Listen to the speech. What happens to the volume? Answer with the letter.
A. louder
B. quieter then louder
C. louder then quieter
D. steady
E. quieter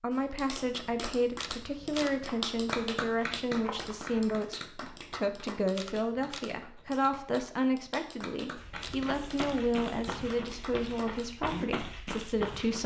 D.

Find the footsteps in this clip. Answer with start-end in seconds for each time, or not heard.
2.2-4.5, 8.6-12.8.